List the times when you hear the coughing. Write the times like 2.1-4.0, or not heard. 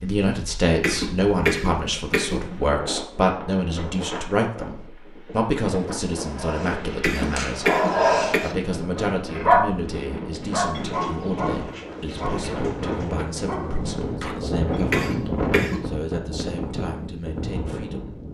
0.8-2.6, 7.0-8.6, 14.9-15.9.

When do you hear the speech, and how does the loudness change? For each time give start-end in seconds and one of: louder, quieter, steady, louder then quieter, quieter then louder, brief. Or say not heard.
0.0-18.2 quieter.